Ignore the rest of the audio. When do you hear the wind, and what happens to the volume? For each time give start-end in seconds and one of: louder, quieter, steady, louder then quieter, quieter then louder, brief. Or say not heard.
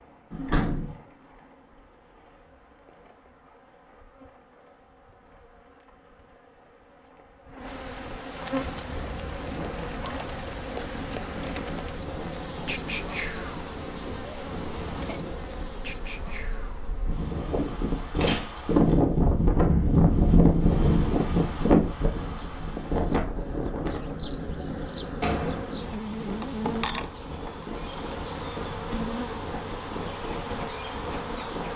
8.2-31.7 louder then quieter.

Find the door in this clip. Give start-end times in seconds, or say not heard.
0.3-0.9, 18.1-18.9, 25.2-25.9.